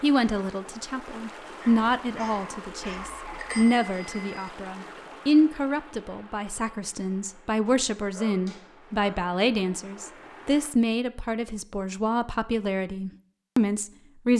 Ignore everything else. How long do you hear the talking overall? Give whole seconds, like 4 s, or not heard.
14 s.